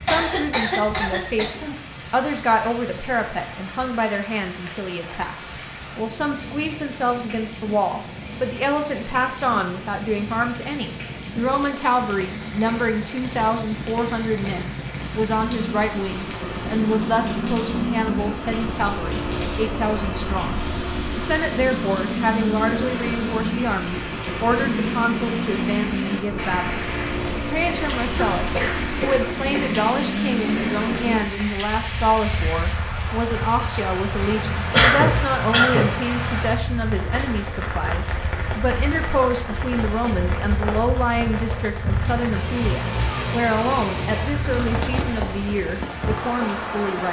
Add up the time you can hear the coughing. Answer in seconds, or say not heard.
4 s.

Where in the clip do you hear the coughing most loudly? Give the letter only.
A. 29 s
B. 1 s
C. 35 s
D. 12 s
C.